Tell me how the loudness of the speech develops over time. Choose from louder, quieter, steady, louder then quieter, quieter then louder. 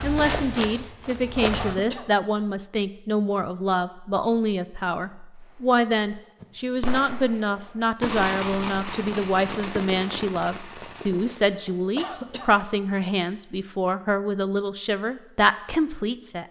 steady.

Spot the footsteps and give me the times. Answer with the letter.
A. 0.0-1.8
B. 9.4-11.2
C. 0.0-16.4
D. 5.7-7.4
A.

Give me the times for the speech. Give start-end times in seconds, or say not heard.
0.0-16.4.